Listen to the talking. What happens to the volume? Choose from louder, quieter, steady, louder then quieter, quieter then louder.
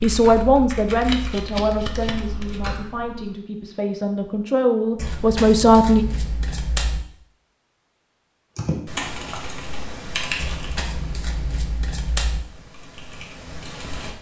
quieter then louder.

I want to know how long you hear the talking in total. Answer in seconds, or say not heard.
6 s.